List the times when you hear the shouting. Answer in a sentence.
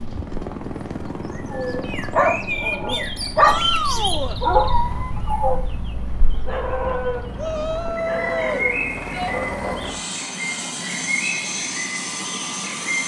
You can hear the shouting from 3.4 to 4.4 s and from 7.3 to 9.3 s.